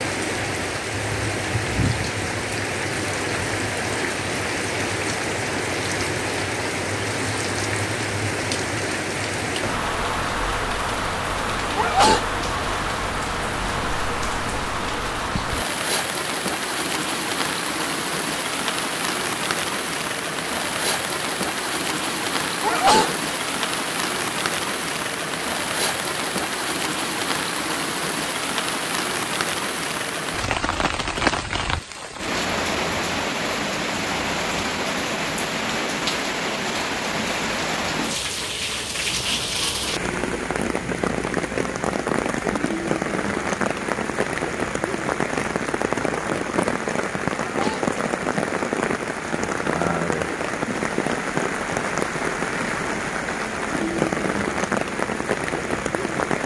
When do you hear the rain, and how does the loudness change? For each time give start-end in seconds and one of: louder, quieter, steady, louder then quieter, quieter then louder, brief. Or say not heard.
0.0-56.4 steady.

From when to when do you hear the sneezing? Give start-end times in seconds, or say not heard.
11.8-12.3, 22.6-23.1, 47.4-47.9.